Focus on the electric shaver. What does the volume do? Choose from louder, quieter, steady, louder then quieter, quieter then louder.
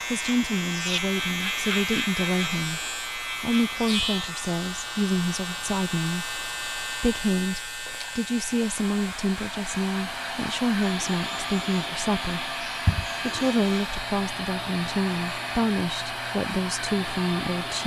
quieter.